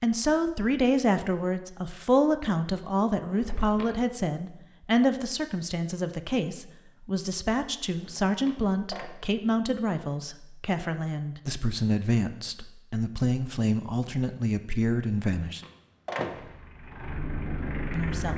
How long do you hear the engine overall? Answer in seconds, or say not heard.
2 s.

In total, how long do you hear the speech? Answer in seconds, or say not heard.
16 s.